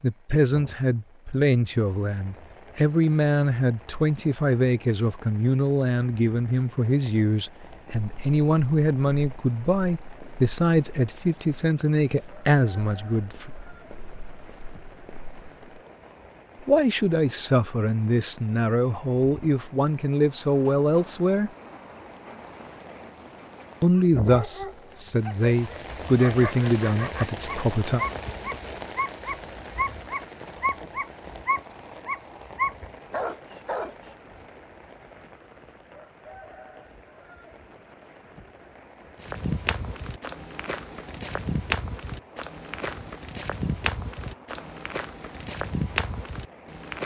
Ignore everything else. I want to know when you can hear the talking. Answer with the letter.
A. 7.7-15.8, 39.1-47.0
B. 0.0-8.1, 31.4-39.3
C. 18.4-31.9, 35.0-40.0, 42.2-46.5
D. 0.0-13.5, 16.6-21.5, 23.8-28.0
D.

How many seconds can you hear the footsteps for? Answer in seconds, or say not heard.
16 s.